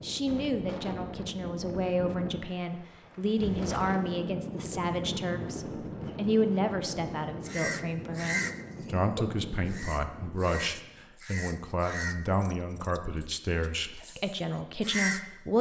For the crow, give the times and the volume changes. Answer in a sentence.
You can hear the crow from 7.5 to 15.2 s, getting quieter.